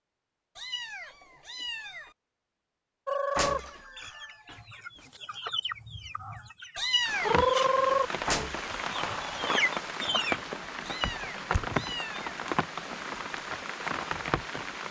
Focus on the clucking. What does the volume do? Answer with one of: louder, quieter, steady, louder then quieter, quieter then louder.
louder then quieter.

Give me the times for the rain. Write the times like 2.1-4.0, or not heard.
7.0-14.8.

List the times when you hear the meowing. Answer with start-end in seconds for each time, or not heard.
0.6-2.1, 6.8-7.5, 10.8-12.3.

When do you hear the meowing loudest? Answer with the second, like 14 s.
7 s.